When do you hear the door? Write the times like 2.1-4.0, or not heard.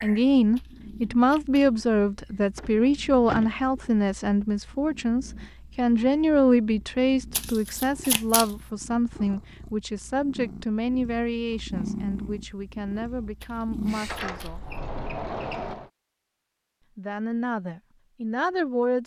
2.5-3.5, 14.1-15.9.